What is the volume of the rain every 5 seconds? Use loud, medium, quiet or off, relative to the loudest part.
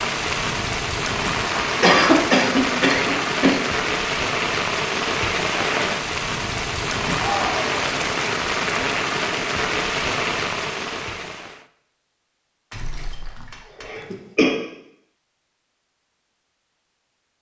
loud, loud, loud, off.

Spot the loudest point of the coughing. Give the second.
2 s.